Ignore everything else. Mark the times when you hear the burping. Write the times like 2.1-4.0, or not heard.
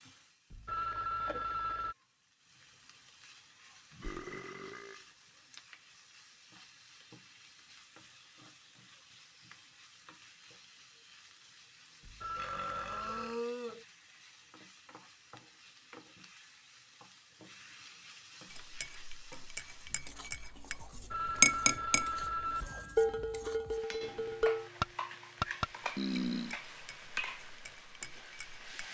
3.9-5.0, 12.3-13.8, 25.9-26.6.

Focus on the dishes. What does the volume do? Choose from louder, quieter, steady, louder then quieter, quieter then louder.
louder then quieter.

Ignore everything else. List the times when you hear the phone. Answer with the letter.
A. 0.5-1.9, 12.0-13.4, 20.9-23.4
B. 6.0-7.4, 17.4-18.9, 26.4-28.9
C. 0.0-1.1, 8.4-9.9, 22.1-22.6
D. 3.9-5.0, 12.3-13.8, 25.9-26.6
A.